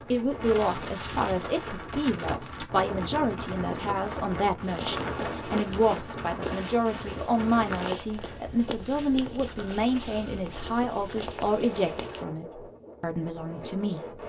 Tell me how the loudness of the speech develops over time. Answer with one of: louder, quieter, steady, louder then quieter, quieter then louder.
steady.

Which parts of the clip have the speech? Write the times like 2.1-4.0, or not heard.
0.1-14.2.